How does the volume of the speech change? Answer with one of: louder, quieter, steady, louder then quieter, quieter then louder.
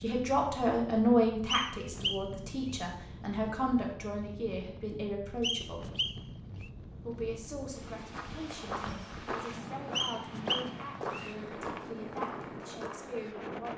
quieter.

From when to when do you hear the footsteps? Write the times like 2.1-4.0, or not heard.
8.1-13.3.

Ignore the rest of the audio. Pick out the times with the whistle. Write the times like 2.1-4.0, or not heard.
1.4-2.2, 5.4-6.7, 9.9-11.3.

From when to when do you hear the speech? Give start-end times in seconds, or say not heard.
0.0-5.8, 7.0-13.7.